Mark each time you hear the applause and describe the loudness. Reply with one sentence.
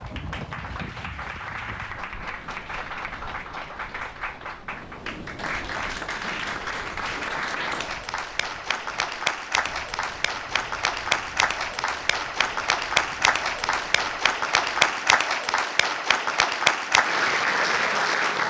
The applause can be heard from 0.0 to 18.4 s, getting louder.